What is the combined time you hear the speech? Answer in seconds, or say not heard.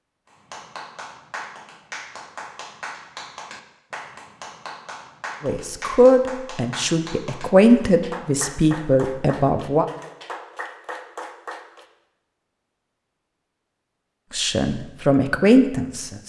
6 s.